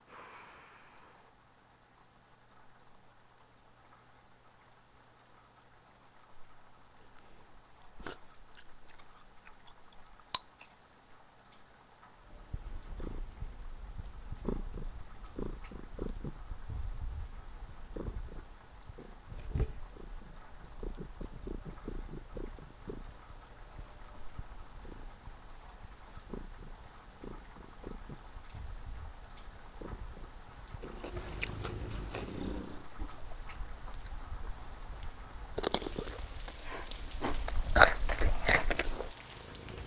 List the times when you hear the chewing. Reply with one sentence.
The chewing can be heard from 7.0 to 10.7 s and from 30.8 to 39.1 s.